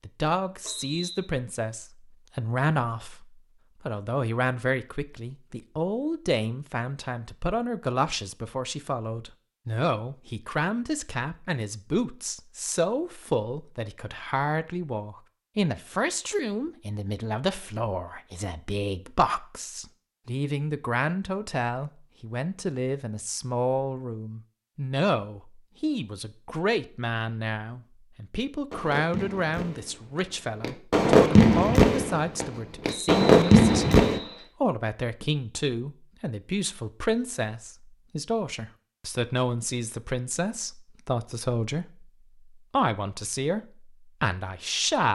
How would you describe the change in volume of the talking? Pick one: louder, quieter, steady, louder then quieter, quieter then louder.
steady.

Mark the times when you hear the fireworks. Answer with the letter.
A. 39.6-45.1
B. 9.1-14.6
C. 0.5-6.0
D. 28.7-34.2
D.